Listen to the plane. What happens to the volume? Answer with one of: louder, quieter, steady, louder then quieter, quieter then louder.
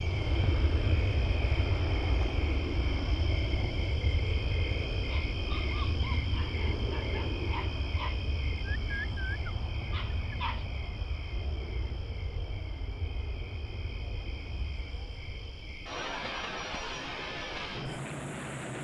quieter then louder.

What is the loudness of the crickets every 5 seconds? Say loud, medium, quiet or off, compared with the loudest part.
loud, loud, medium, medium.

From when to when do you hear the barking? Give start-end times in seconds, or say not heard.
5.0-10.7.